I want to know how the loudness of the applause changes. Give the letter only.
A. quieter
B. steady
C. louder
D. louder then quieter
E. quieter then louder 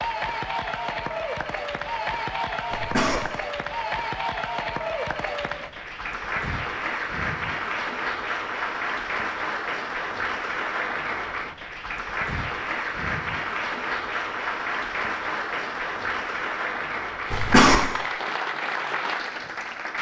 B.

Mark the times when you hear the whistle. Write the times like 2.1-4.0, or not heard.
not heard.